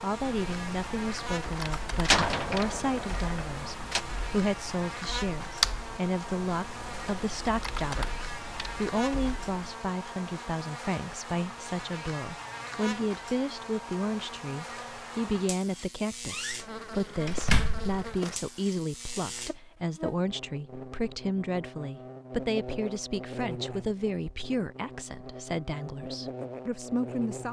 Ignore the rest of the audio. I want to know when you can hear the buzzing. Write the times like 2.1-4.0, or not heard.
0.0-27.4.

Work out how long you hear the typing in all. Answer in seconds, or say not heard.
10 s.